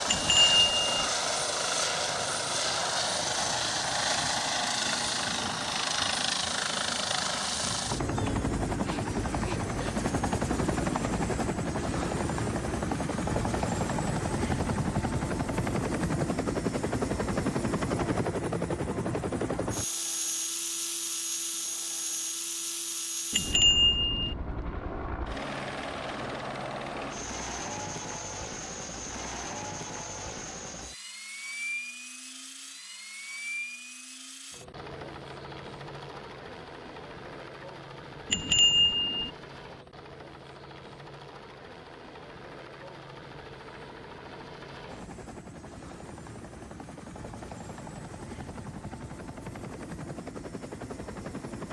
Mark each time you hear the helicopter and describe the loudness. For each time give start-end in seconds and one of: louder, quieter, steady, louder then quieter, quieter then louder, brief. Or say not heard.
0.0-51.6 quieter.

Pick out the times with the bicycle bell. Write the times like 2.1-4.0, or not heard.
0.1-1.1, 23.3-24.4, 38.3-39.3.